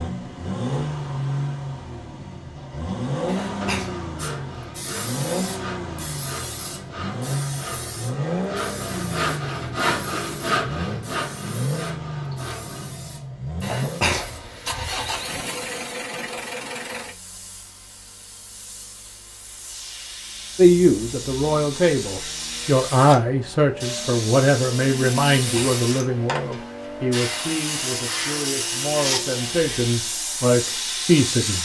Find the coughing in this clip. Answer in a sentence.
The coughing can be heard from 3.2 to 3.9 s, from 13.6 to 15.3 s and from 25.4 to 25.8 s.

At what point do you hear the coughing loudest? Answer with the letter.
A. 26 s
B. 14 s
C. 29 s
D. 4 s
B.